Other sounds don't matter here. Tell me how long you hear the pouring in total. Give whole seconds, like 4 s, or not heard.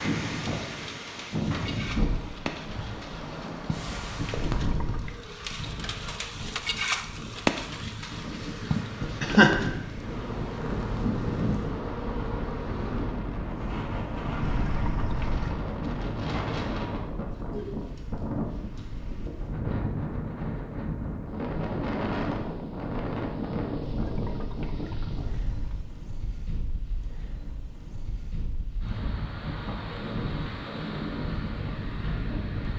4 s.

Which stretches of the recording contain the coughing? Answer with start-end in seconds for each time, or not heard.
8.8-9.6.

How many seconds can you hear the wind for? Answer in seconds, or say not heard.
33 s.